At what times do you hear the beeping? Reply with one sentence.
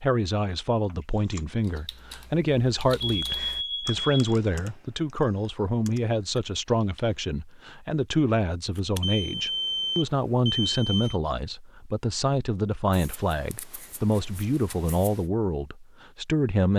You can hear the beeping from 3.0 to 4.3 s and from 9.0 to 11.2 s.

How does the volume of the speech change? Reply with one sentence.
The volume of the speech stays about the same.